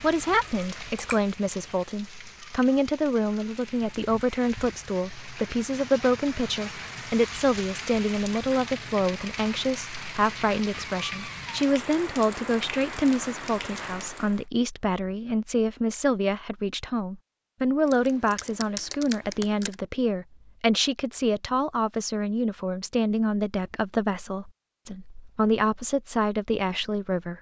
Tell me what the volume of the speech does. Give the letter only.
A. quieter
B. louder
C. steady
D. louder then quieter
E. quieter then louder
C.